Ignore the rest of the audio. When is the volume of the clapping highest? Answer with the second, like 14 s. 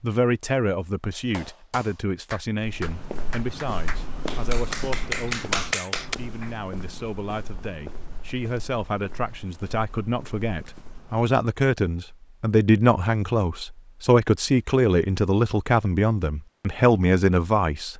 6 s.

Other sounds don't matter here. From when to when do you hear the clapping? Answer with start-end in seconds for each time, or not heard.
1.1-6.5.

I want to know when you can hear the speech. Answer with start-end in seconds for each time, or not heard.
0.0-17.9.